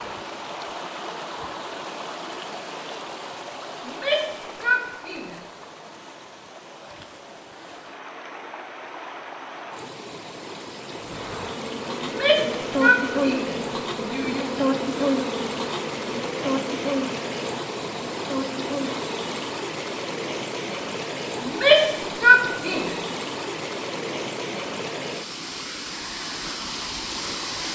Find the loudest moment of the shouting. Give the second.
22 s.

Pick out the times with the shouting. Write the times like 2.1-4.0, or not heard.
3.9-5.3, 12.0-14.7, 21.4-22.9.